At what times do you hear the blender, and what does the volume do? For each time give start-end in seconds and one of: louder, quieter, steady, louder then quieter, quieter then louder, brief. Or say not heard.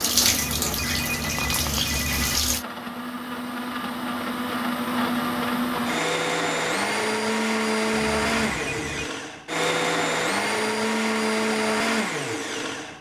0.0-12.9 louder.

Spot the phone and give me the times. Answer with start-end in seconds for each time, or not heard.
0.3-2.4, 7.9-9.1.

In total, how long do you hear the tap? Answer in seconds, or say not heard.
3 s.